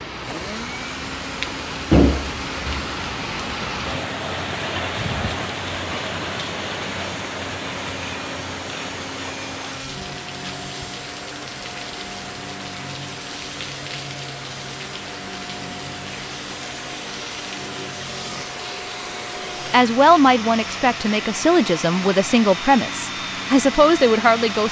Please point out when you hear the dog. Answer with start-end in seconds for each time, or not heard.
not heard.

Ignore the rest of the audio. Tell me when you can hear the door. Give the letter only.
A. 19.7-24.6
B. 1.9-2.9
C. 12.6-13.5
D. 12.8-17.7
B.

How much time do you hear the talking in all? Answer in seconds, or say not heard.
5 s.